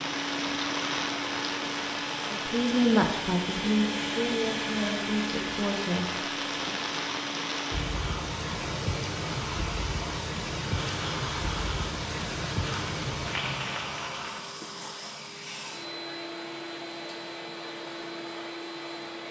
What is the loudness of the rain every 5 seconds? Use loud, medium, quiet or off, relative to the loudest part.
loud, loud, loud, off.